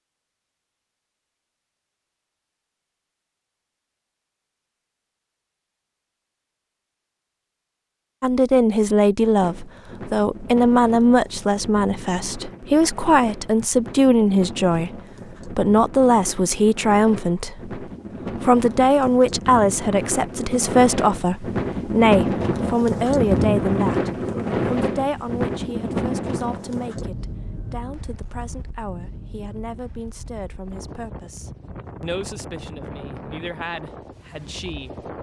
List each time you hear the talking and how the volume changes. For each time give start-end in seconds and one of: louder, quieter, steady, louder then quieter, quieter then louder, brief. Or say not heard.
8.2-35.1 quieter.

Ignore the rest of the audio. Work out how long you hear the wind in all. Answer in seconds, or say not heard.
26 s.